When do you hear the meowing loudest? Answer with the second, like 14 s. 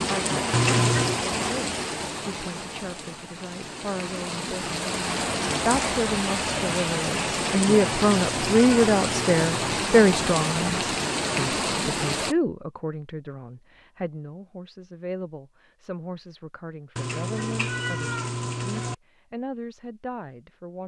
1 s.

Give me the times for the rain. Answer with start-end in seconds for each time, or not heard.
0.0-12.3.